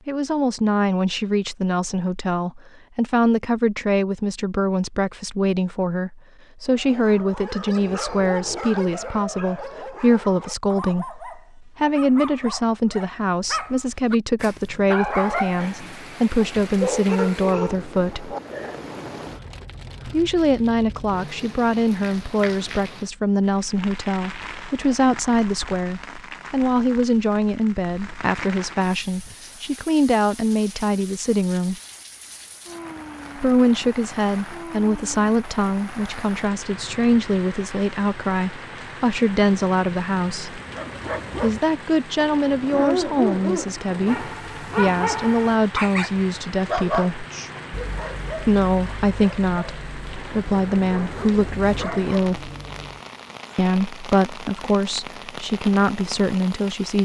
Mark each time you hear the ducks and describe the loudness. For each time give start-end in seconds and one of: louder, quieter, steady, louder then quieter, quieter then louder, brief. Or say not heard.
not heard.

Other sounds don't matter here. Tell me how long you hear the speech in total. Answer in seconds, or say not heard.
51 s.